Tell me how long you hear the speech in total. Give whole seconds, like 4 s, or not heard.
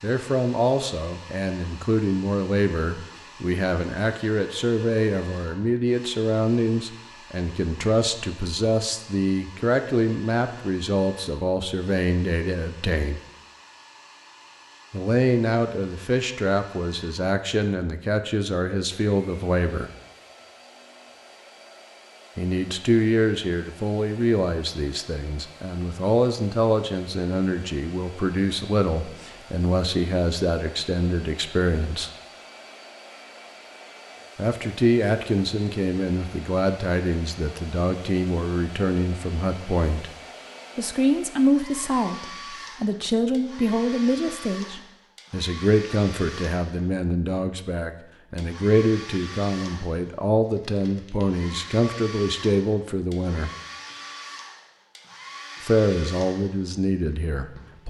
49 s.